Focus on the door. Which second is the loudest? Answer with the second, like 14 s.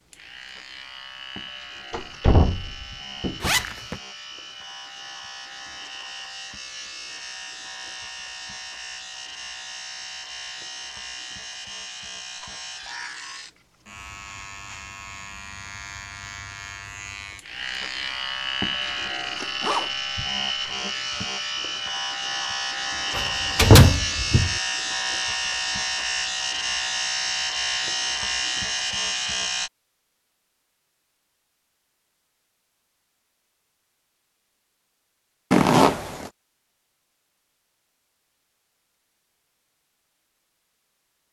24 s.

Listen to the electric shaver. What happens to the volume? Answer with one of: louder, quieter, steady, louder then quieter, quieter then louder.
louder.